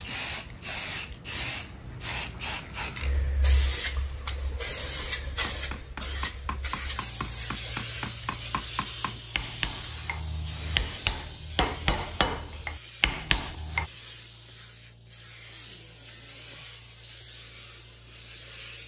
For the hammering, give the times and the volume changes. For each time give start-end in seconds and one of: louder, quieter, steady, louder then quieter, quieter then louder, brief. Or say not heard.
5.2-13.9 louder.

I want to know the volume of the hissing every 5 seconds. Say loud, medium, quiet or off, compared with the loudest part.
loud, loud, medium, medium.